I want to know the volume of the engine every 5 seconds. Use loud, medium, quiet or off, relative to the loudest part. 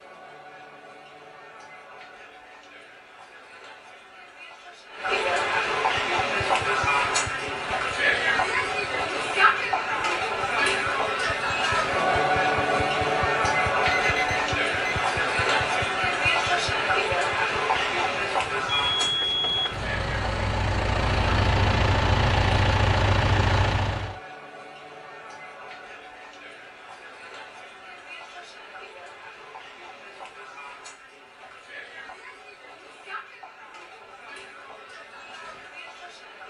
off, quiet, quiet, quiet, loud, off, off, off.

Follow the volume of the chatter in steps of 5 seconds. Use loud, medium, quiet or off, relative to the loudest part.
quiet, loud, loud, loud, quiet, quiet, quiet, quiet.